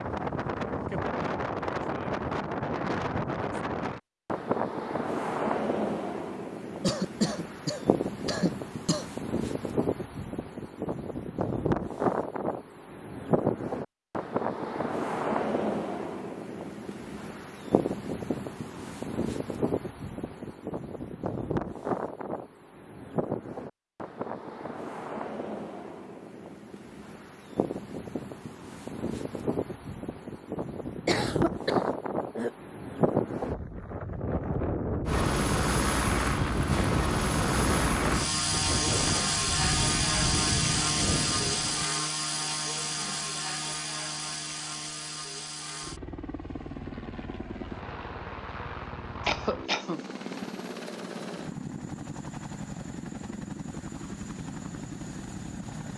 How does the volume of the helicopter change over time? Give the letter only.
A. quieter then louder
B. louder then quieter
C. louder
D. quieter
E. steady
D.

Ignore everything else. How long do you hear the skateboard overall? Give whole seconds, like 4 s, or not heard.
not heard.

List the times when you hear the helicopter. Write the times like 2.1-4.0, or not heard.
35.0-55.9.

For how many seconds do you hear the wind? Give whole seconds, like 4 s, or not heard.
42 s.